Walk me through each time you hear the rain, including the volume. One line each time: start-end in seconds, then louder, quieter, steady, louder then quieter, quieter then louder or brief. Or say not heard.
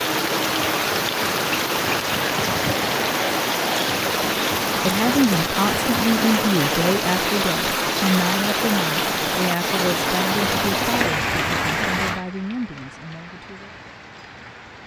0.0-14.8 quieter.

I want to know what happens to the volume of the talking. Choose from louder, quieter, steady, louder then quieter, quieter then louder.
quieter.